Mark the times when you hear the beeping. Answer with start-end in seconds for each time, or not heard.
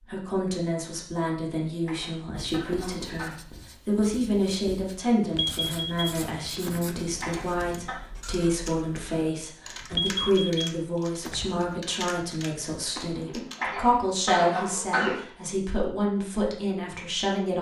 5.2-6.8, 9.8-11.8.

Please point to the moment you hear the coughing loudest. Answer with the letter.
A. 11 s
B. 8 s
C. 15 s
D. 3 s
C.